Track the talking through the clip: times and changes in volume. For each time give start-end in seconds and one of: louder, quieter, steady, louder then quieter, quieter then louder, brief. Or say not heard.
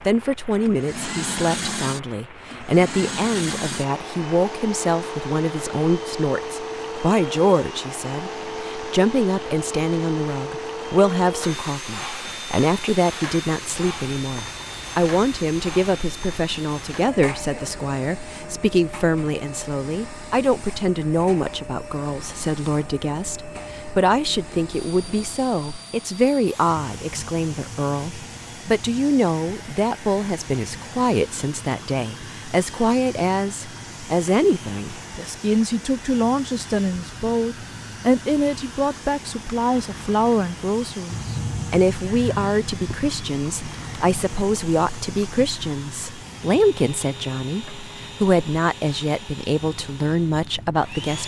0.1-51.2 steady.